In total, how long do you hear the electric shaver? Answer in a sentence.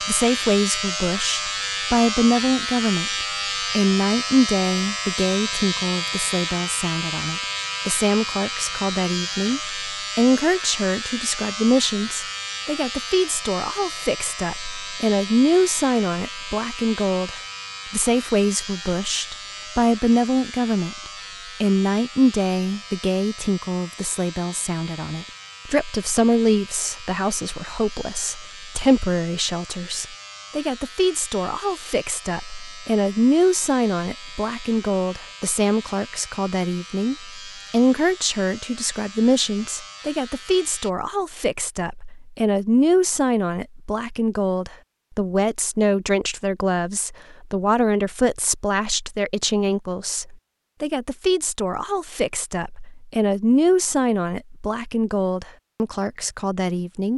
You can hear the electric shaver for 41 seconds altogether.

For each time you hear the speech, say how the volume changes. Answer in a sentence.
You can hear the speech from 0.1 to 57.1 s, at a steady volume.